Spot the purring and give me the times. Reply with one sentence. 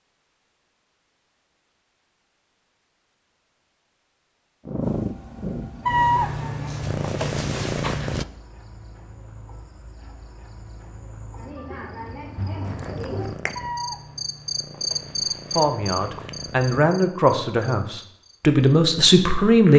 The purring can be heard from 4.6 to 8.2 s and from 12.6 to 16.8 s.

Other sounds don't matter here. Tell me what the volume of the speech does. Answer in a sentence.
The volume of the speech goes up.